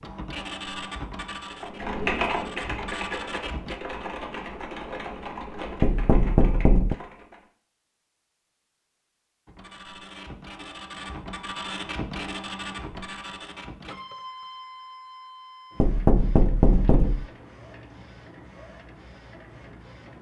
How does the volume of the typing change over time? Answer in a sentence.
The volume of the typing goes down.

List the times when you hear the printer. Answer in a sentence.
You can hear the printer from 0.0 to 3.8 s and from 9.4 to 20.1 s.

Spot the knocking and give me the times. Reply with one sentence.
The knocking can be heard from 5.8 to 7.0 s and from 15.8 to 17.2 s.